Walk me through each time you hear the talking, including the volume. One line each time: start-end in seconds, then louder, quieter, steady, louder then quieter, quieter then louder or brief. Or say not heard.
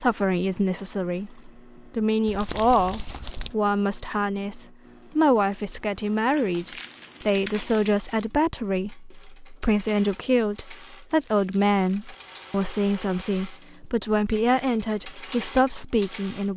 0.0-16.5 steady.